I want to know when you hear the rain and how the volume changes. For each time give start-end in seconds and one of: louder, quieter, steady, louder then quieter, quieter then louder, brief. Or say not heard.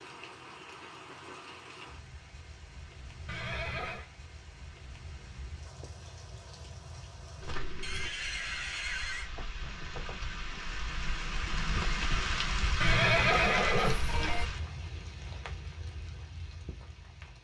0.0-17.3 louder then quieter.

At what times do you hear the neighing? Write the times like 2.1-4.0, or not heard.
3.2-4.0, 7.8-9.3, 12.8-14.4.